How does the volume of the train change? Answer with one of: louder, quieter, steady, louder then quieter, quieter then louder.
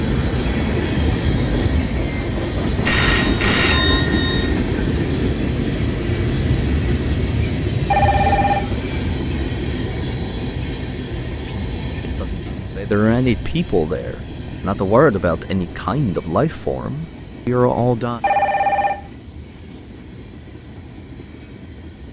quieter.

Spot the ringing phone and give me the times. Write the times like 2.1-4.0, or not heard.
2.9-4.5, 7.9-8.8, 18.2-19.1.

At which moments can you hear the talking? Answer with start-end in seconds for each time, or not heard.
11.4-18.2.